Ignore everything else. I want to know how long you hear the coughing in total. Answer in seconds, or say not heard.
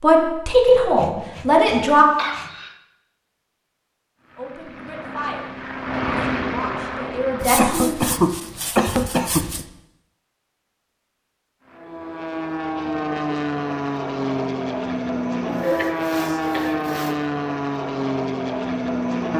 4 s.